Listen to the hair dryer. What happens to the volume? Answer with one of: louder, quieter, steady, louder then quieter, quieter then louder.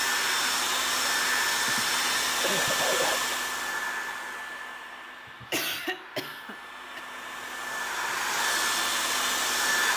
quieter then louder.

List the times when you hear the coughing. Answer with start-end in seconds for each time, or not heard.
1.6-3.4, 5.2-7.0.